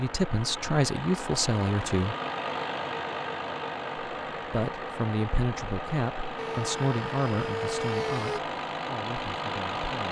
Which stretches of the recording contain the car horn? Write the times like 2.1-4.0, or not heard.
not heard.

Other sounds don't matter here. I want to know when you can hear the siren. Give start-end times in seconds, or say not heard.
6.3-8.4.